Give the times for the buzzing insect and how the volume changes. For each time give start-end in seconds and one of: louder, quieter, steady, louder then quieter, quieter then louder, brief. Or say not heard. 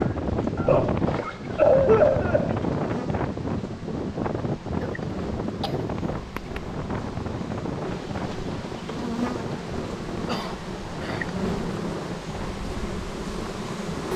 0.0-14.1 louder.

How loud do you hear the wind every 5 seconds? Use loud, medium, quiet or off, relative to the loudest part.
loud, medium, medium.